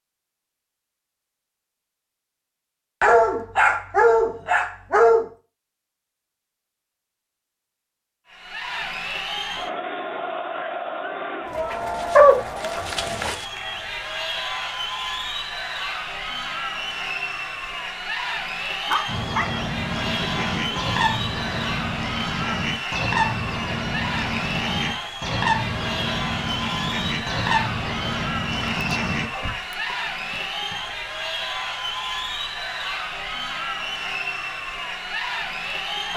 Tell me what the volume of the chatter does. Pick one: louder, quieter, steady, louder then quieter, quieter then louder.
steady.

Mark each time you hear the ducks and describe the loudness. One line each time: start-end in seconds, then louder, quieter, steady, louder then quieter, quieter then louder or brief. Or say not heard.
19.1-29.6 steady.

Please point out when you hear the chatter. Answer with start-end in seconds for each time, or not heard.
8.2-36.1.